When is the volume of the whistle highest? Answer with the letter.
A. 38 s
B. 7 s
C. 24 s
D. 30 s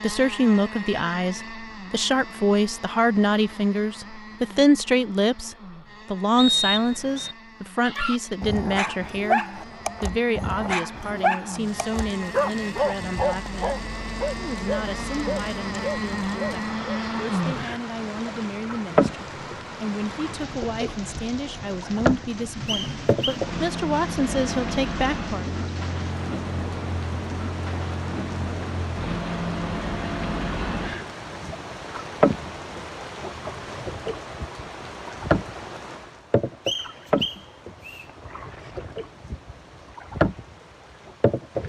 B.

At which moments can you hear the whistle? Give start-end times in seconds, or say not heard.
6.3-7.3, 22.6-23.4, 36.6-38.0.